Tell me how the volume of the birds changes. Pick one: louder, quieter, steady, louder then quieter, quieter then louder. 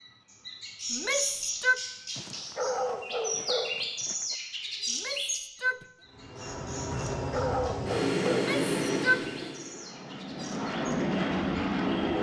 quieter.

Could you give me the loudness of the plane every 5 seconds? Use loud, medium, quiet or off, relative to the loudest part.
off, loud, loud.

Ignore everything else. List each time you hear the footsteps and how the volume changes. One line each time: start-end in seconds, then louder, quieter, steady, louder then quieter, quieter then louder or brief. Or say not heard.
not heard.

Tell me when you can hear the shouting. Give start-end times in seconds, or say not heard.
0.9-1.8, 4.8-5.8, 8.3-9.5.